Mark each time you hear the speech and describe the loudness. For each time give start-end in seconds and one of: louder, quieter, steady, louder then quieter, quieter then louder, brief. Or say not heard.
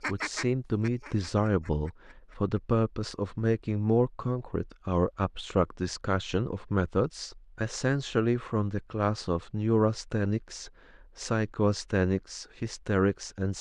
0.1-13.5 steady.